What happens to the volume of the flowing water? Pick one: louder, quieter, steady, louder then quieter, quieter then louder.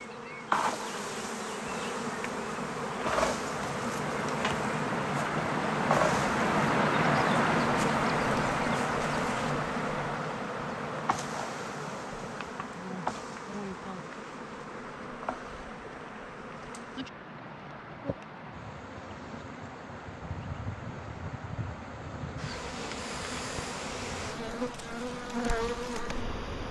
louder then quieter.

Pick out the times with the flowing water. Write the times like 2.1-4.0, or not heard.
0.0-26.6.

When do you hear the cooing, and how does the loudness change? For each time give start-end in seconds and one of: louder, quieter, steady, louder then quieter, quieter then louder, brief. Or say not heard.
not heard.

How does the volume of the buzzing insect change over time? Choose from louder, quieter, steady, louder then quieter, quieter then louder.
quieter then louder.